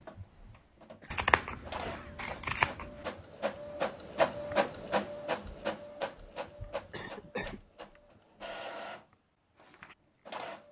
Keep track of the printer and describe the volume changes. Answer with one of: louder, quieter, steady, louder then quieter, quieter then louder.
louder then quieter.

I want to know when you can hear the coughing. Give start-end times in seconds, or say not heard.
1.0-2.2, 6.9-7.6.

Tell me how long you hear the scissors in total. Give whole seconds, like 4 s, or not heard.
2 s.